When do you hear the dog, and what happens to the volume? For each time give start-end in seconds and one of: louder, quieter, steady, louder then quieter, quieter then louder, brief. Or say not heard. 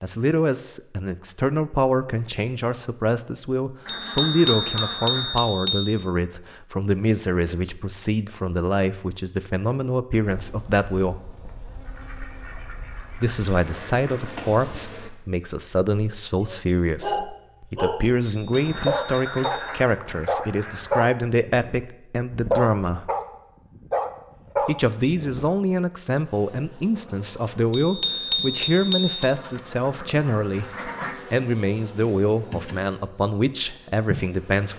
16.4-25.4 steady.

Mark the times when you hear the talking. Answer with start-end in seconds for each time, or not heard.
0.0-11.2, 13.2-23.1, 24.6-34.7.